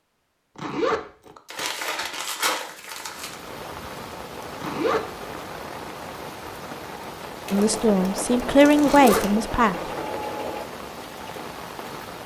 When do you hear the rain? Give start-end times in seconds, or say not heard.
3.0-12.2.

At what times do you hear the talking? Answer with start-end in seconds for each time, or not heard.
7.5-9.8.